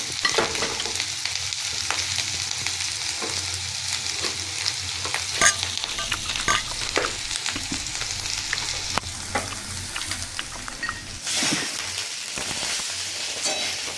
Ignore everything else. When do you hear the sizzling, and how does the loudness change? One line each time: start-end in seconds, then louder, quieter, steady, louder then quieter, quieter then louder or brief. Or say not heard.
0.0-13.9 steady.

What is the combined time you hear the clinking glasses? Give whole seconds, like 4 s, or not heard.
3 s.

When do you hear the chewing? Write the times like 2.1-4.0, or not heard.
5.8-13.9.